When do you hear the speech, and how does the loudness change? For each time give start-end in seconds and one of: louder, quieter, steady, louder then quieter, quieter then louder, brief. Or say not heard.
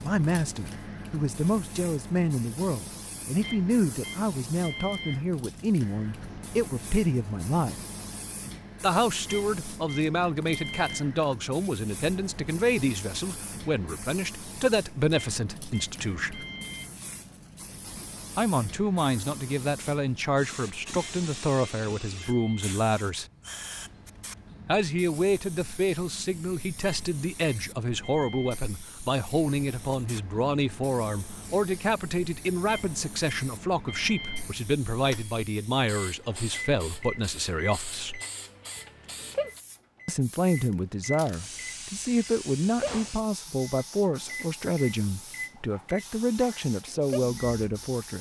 0.0-7.8 steady
8.8-16.4 steady
18.4-23.2 steady
24.6-38.2 steady
40.0-48.1 steady.